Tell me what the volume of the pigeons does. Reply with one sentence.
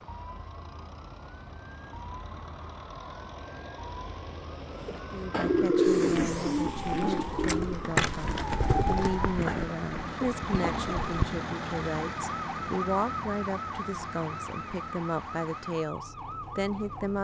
The loudness of the pigeons goes down.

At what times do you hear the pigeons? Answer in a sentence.
The pigeons can be heard from 4.8 to 11.1 s.